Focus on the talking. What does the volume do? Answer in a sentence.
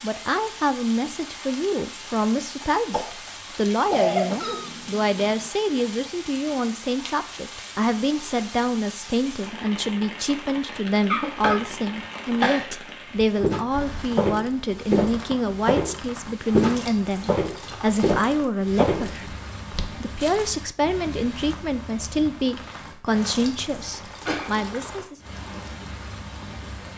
The volume of the talking stays about the same.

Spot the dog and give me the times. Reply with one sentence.
You can't hear the dog here.